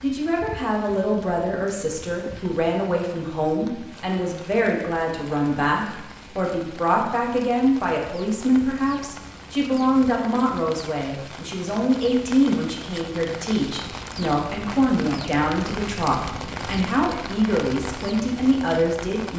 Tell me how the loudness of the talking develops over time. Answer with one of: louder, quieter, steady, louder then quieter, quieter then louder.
steady.